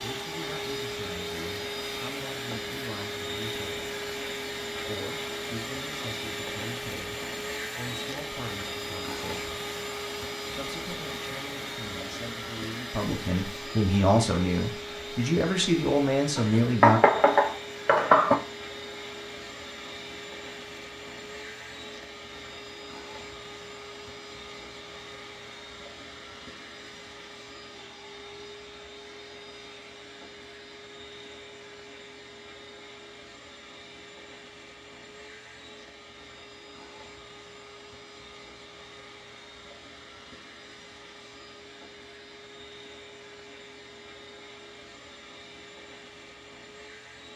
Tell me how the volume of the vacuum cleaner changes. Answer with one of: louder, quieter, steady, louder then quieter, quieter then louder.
quieter.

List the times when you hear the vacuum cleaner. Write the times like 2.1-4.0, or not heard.
0.0-47.3.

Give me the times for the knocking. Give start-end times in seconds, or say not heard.
16.4-18.4.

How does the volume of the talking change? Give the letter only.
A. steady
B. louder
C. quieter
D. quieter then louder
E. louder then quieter
B.